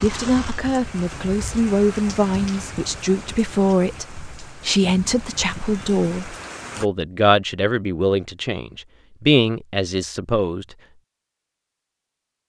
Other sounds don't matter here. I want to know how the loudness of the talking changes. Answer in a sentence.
The volume of the talking stays about the same.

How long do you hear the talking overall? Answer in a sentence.
The talking can be heard for 11 seconds in total.